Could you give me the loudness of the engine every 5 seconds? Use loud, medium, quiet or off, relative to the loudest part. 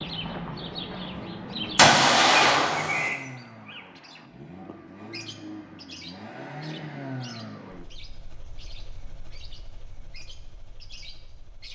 loud, loud, quiet.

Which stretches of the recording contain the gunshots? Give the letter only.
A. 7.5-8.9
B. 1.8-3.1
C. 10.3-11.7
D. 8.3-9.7
B.